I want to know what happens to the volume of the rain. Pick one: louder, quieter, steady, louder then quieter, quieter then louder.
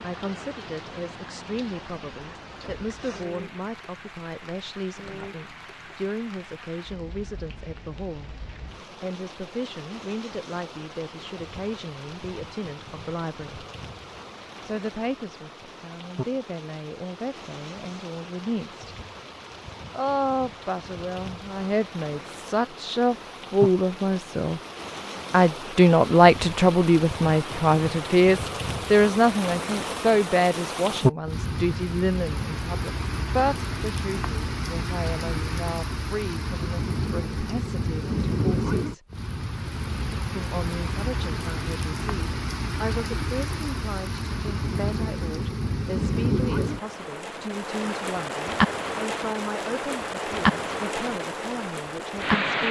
louder.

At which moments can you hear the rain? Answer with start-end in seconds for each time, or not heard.
0.0-52.6.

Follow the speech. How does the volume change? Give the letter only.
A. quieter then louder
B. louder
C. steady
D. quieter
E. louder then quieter
E.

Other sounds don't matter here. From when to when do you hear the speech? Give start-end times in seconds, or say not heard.
0.0-13.7, 14.7-18.9, 19.9-24.6, 25.3-39.0, 40.4-52.6.